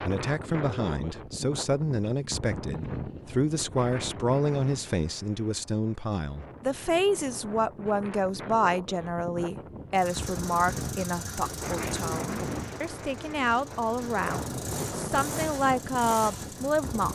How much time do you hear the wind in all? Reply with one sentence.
You can hear the wind for 17 seconds altogether.